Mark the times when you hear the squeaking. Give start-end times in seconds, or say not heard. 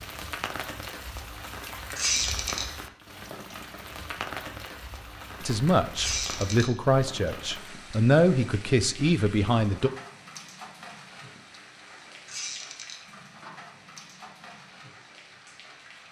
1.9-2.6, 6.0-6.7, 12.2-13.0.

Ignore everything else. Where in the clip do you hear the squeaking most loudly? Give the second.
2 s.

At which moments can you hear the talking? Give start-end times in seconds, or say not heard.
5.4-9.9.